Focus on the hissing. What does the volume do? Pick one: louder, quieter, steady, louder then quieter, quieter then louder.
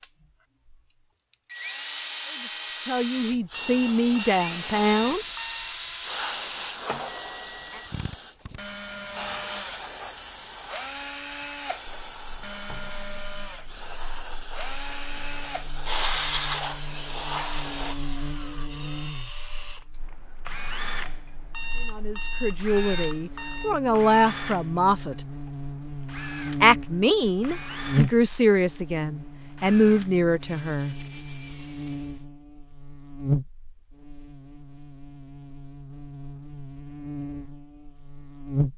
quieter then louder.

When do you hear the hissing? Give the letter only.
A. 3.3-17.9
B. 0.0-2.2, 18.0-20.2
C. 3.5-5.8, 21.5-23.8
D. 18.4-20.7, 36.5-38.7
A.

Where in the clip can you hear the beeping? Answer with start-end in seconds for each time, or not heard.
3.5-5.8, 21.5-23.8.